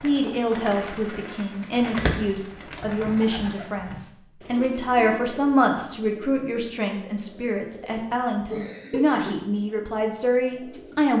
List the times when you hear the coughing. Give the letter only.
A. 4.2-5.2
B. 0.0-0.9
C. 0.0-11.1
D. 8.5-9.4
D.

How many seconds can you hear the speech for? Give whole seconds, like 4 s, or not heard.
11 s.